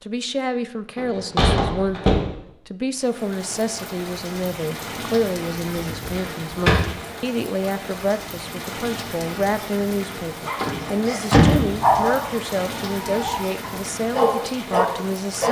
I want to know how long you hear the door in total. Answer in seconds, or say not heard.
4 s.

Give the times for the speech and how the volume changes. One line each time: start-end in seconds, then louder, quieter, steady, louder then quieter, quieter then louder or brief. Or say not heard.
0.0-15.4 steady.